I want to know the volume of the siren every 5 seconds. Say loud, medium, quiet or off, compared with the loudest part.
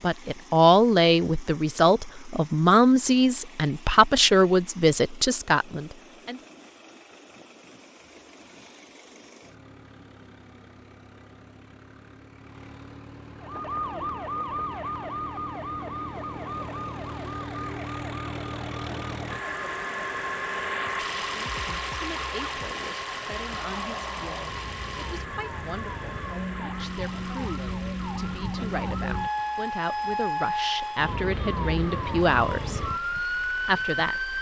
off, off, loud, medium, medium, loud, loud.